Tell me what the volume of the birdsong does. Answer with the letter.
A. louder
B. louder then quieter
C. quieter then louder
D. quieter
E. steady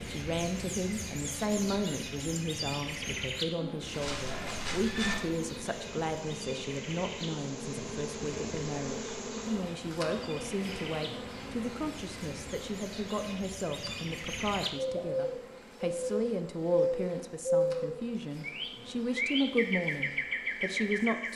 C.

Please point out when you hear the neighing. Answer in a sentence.
The neighing can be heard from 3.9 to 5.2 s.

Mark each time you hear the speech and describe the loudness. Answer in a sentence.
You can hear the speech from 0.1 to 21.3 s, at a steady volume.